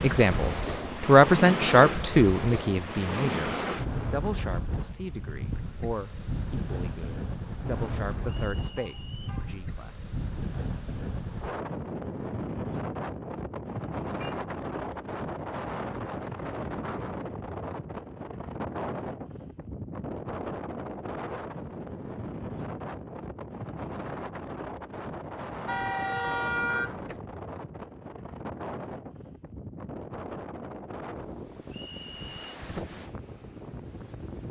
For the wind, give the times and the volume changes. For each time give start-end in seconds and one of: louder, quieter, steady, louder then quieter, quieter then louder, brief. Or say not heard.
0.0-34.4 quieter.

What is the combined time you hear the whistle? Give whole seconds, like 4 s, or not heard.
2 s.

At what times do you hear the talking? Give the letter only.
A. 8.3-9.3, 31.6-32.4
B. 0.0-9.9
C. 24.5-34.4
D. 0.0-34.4
B.